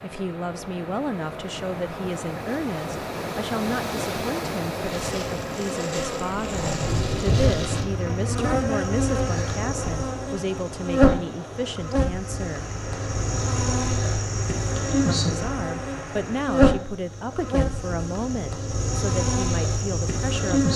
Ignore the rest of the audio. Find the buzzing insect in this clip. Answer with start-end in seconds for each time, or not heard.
4.7-20.7.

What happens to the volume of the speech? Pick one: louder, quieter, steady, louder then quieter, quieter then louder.
steady.